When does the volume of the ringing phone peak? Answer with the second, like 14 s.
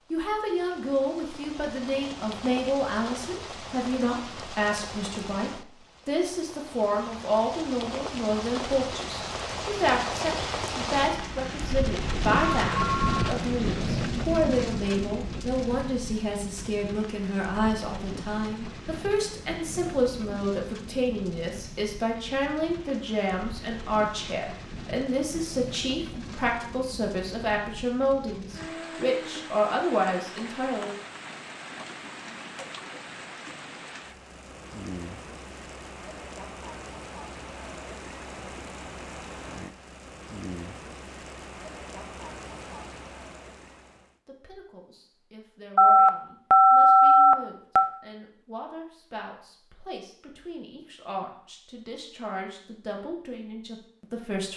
47 s.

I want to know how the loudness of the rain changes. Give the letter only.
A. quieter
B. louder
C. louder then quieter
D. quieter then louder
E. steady
C.